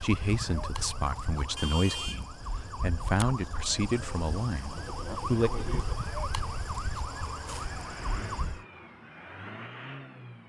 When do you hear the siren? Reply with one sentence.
You can hear the siren from 0.0 to 8.7 s.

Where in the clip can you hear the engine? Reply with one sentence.
You can hear the engine from 4.7 to 10.4 s.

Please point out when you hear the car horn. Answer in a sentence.
The car horn can be heard from 1.6 to 2.3 s.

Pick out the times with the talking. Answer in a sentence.
The talking can be heard from 0.0 to 5.5 s.